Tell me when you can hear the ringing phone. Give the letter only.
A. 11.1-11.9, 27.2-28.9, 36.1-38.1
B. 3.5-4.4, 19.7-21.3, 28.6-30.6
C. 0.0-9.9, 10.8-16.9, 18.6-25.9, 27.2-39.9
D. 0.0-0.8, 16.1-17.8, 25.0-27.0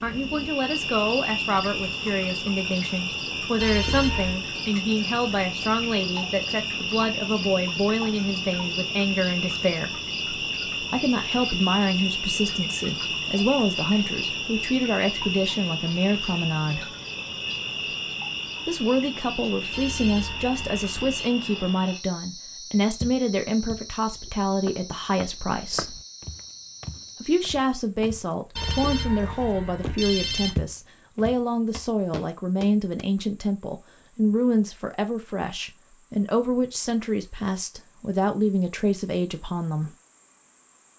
B.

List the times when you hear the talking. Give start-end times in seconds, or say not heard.
0.0-9.9, 10.8-16.9, 18.6-25.9, 27.2-39.9.